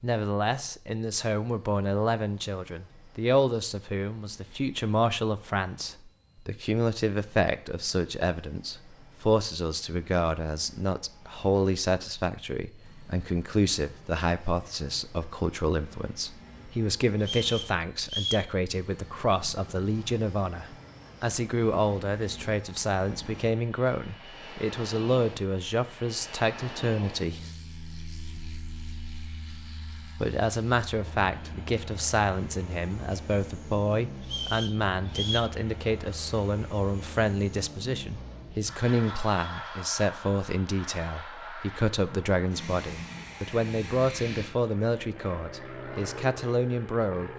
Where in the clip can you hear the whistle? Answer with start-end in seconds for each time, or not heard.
17.2-18.5, 34.2-35.5.